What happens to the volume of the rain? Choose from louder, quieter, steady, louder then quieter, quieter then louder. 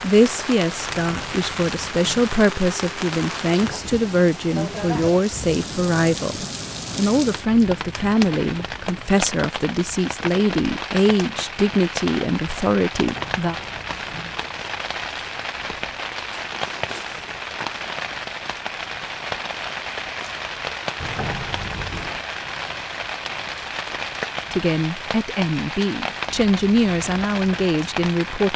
steady.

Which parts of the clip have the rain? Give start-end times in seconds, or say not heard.
0.0-28.5.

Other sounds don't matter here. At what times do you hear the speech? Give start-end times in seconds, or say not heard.
0.0-13.6, 24.5-28.5.